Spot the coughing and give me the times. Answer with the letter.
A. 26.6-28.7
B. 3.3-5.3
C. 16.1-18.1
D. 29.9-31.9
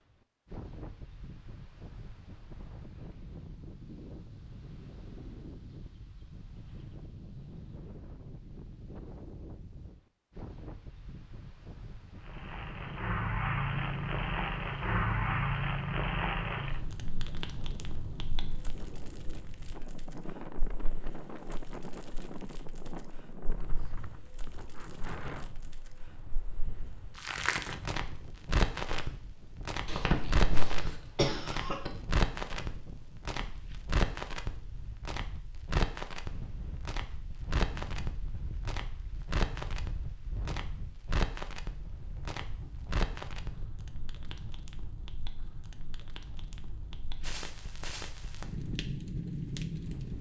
D.